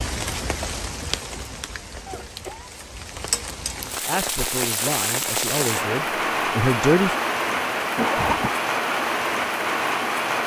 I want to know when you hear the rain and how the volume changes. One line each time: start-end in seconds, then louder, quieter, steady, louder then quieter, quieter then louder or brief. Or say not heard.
0.0-10.4 louder.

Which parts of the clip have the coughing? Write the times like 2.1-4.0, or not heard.
2.0-2.7, 7.5-8.6.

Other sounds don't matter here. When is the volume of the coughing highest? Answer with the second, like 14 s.
8 s.